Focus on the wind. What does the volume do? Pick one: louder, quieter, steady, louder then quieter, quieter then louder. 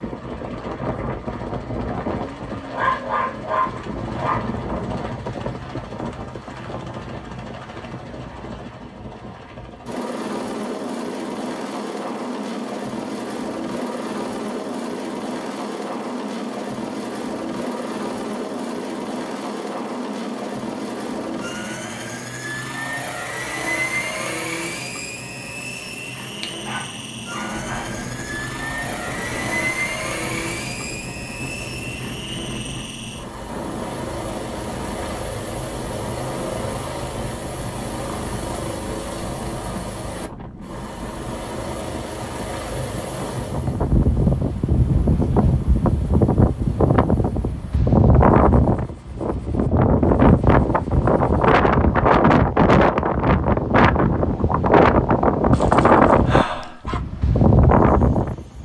louder.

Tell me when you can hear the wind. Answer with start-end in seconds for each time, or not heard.
27.5-58.6.